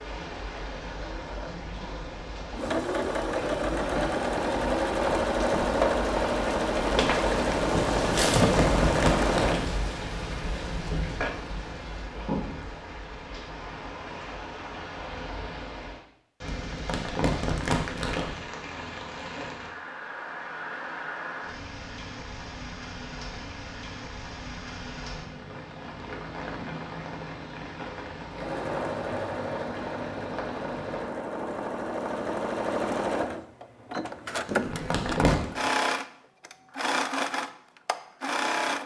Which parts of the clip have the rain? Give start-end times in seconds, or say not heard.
0.0-31.1.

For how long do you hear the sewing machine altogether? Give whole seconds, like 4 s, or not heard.
20 s.